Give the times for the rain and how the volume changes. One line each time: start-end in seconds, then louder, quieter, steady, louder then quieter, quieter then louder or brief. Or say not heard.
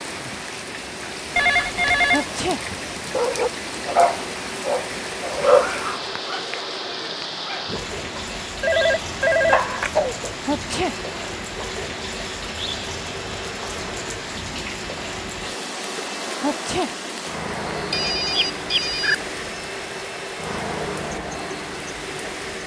0.0-22.6 steady.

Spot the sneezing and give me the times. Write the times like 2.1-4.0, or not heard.
2.1-2.6, 10.4-10.9, 16.4-16.9.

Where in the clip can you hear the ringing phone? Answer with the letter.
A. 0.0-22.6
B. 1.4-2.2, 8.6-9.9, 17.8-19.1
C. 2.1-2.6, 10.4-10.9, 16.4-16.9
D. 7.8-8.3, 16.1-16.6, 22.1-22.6
B.